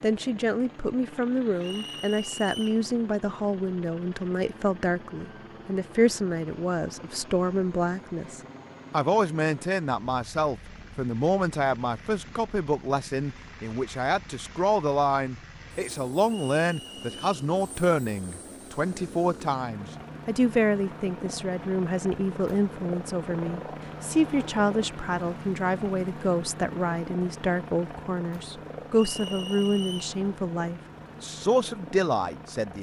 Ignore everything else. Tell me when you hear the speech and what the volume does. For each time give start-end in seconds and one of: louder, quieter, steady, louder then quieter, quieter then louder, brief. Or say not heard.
0.0-32.7 steady.